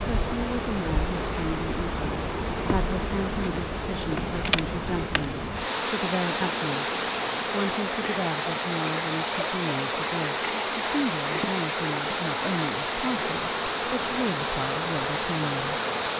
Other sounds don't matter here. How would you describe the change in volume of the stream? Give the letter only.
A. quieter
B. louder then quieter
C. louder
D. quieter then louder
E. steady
E.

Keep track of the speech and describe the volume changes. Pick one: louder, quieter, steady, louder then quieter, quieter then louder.
steady.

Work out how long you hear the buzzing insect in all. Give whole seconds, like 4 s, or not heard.
16 s.